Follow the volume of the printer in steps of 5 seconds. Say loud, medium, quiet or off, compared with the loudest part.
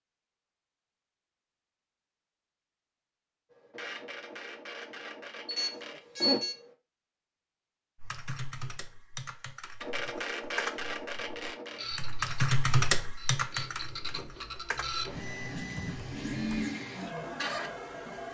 medium, loud, loud, loud.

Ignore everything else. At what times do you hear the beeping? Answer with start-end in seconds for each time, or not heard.
5.5-6.5.